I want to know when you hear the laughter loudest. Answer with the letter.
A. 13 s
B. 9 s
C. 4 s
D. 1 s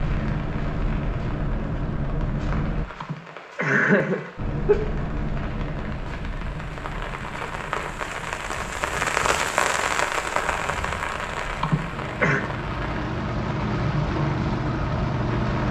C.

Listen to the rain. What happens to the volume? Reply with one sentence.
The volume of the rain goes up, then down.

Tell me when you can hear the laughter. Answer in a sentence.
You can hear the laughter from 3.0 to 4.8 s and from 11.6 to 12.4 s.